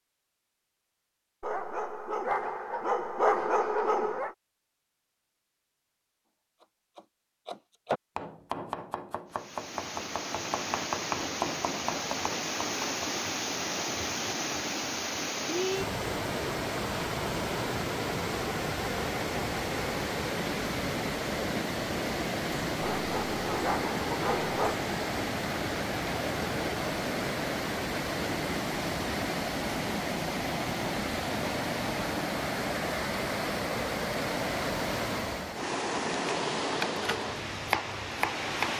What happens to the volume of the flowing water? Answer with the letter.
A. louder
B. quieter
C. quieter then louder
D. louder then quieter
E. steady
E.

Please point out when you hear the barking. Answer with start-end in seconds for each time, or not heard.
1.4-4.3, 22.8-24.8.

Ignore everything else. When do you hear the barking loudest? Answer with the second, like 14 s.
3 s.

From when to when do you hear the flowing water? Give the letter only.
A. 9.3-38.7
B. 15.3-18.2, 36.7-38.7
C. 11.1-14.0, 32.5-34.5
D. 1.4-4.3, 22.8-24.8
A.